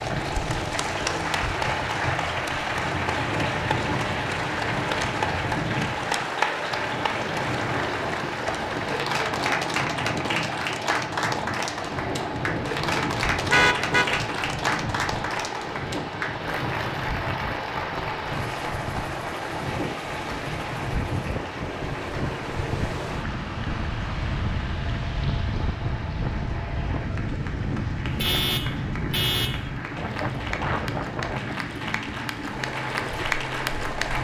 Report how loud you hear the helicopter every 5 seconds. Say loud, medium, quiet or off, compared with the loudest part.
loud, loud, loud, loud, medium, medium, loud.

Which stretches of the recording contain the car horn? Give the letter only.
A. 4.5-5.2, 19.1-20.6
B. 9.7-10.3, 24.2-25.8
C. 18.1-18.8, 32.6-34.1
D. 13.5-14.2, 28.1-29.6
D.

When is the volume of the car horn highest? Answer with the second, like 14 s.
14 s.